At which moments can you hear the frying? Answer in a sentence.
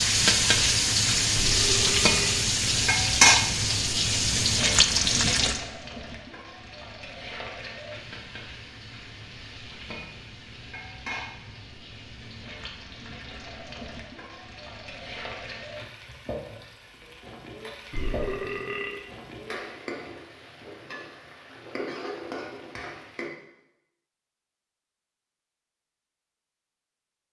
The frying can be heard from 0.0 to 23.3 s.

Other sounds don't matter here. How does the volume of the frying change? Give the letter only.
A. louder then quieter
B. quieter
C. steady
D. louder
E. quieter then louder
B.